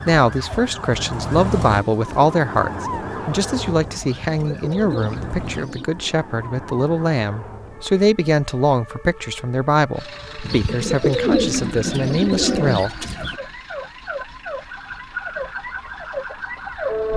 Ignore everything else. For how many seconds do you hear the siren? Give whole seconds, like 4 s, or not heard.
17 s.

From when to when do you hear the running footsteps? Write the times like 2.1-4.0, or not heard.
not heard.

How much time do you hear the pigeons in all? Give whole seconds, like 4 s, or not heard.
5 s.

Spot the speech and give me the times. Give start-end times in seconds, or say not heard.
0.1-13.1.